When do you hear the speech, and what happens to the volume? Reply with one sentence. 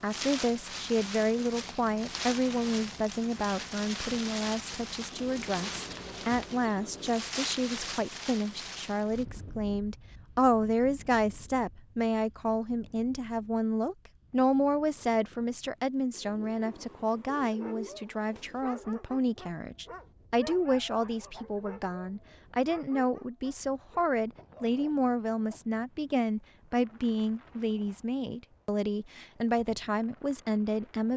You can hear the speech from 0.0 to 31.1 s, at a steady volume.